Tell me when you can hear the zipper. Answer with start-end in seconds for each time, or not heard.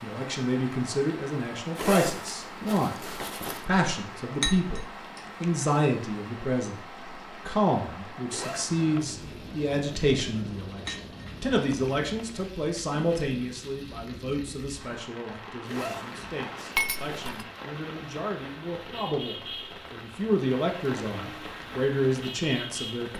1.8-3.6, 8.2-8.8, 15.7-17.4.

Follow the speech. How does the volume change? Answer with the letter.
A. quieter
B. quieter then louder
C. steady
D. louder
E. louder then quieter
B.